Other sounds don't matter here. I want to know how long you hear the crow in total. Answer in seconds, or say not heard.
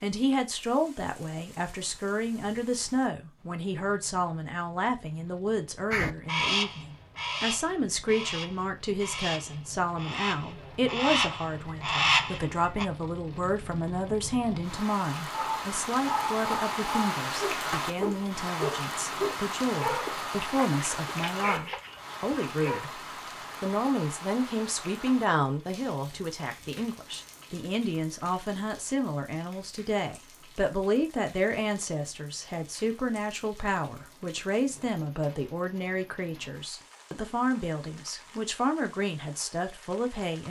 7 s.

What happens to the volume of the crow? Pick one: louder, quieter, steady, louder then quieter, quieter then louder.
quieter then louder.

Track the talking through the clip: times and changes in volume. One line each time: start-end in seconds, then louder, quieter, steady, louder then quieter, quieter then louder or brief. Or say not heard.
0.0-23.0 steady
23.6-40.4 steady.